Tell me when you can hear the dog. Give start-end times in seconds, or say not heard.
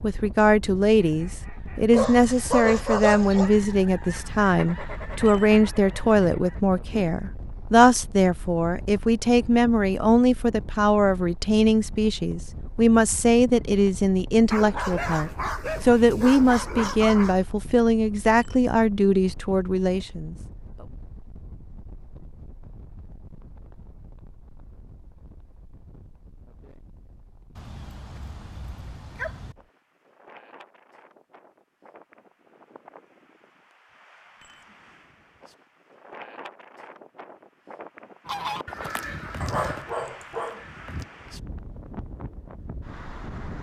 1.9-3.5, 14.4-17.4, 27.6-29.6, 39.4-40.6.